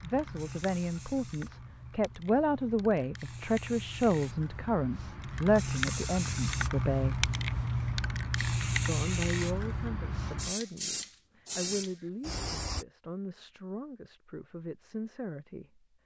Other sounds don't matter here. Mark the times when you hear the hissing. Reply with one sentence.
You can hear the hissing from 0.0 to 12.8 s.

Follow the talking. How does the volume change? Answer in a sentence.
The loudness of the talking goes down.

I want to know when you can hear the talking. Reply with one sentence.
The talking can be heard from 0.0 to 7.3 s and from 8.8 to 15.8 s.